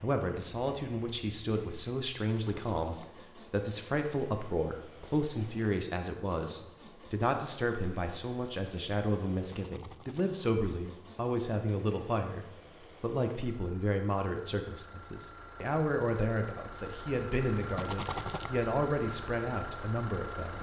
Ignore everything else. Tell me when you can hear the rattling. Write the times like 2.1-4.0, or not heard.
2.3-3.1, 9.5-10.2, 17.8-18.5.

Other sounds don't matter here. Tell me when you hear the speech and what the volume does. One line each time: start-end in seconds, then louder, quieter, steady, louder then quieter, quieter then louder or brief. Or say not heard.
0.0-20.5 steady.